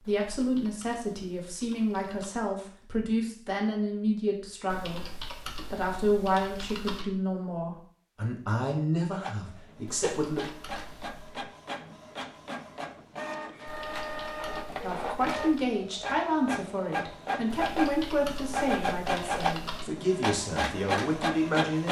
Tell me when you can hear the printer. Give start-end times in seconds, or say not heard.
9.1-21.8.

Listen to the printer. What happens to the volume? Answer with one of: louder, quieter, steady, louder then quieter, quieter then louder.
louder.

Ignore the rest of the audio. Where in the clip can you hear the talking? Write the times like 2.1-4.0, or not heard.
0.0-10.4, 14.8-21.8.